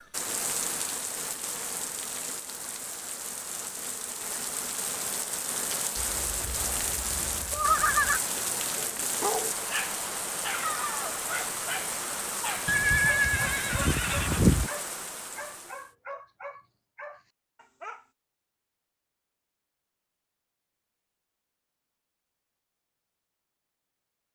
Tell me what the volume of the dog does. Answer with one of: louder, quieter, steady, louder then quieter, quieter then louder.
quieter.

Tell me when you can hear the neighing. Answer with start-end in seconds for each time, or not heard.
6.0-8.2, 12.7-14.7.